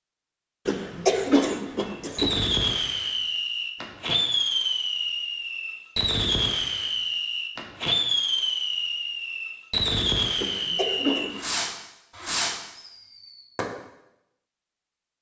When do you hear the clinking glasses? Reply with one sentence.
You can't hear the clinking glasses here.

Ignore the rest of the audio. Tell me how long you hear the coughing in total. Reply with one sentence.
The coughing can be heard for 3 seconds in total.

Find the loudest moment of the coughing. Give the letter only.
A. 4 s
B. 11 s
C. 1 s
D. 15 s
C.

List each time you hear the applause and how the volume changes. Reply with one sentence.
You can't hear the applause here.